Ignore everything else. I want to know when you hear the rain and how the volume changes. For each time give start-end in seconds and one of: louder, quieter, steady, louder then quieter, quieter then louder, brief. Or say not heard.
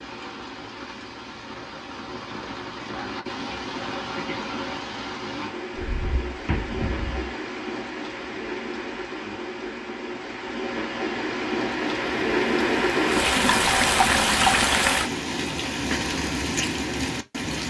0.0-17.6 louder.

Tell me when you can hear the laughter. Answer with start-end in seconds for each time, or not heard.
not heard.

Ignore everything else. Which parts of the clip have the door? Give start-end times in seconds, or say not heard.
5.8-7.3.